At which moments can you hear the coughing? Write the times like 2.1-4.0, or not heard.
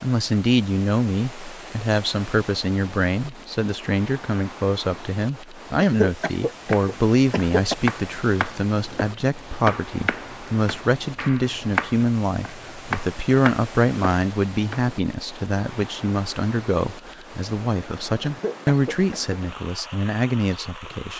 5.8-7.8, 18.2-19.4.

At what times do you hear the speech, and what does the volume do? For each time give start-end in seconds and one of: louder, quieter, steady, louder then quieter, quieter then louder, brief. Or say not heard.
0.0-21.1 steady.